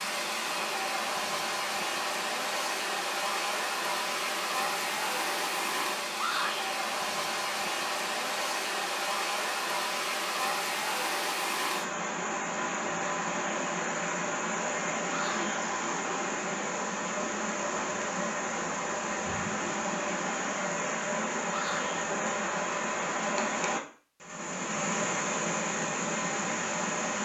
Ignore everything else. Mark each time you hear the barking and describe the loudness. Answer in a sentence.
The barking can't be heard in this clip.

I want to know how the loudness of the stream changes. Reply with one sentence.
The loudness of the stream stays about the same.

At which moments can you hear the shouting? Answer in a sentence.
You can hear the shouting from 6.2 to 6.7 s, from 15.1 to 15.6 s and from 21.4 to 22.1 s.